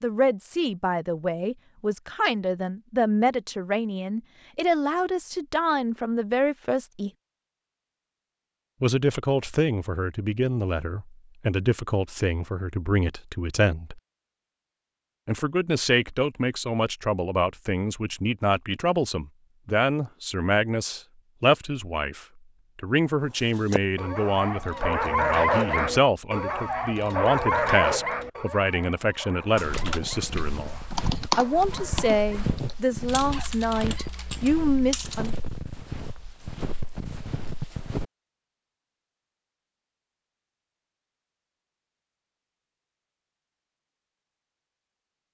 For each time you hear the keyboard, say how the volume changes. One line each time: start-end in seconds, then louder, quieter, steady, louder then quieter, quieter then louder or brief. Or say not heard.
29.6-35.3 louder then quieter.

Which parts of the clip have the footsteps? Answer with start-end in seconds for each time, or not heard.
29.6-38.0.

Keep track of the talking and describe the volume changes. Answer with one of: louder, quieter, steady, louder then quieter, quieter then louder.
steady.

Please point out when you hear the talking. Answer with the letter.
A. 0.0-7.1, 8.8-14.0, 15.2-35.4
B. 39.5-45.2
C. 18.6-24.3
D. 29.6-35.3
A.